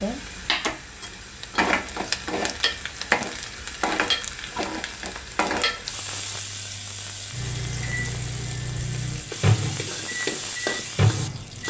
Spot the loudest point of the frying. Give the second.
4 s.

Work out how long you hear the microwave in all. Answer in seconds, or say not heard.
4 s.